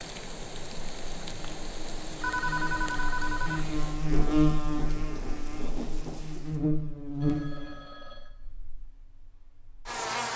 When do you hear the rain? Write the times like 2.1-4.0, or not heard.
0.0-6.6.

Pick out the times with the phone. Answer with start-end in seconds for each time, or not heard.
2.2-3.6, 7.2-8.3.